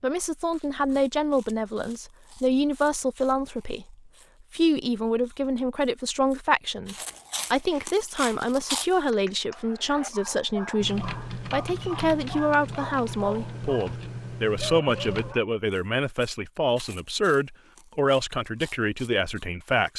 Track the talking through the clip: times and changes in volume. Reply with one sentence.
The talking can be heard from 0.0 to 19.9 s, at a steady volume.